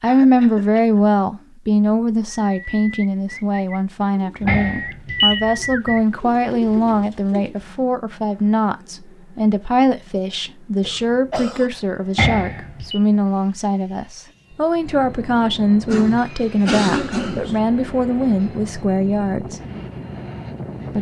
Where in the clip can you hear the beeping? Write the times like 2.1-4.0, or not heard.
4.5-5.4, 12.2-12.9.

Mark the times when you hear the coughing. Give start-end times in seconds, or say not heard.
0.1-1.1, 10.8-11.7, 15.8-17.6.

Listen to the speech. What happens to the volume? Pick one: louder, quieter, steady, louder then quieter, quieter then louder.
steady.